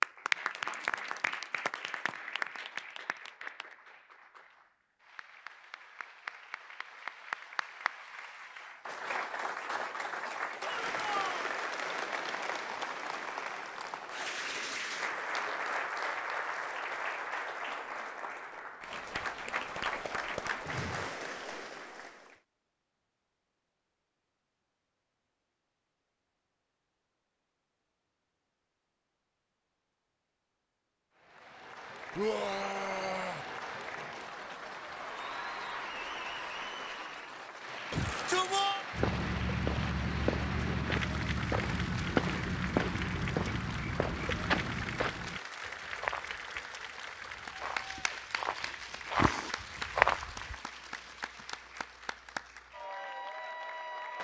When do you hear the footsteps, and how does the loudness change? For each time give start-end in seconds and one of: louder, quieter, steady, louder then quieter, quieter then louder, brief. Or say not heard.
38.9-50.6 quieter then louder.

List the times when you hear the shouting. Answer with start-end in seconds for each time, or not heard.
10.8-11.5, 32.1-33.5, 37.9-38.9.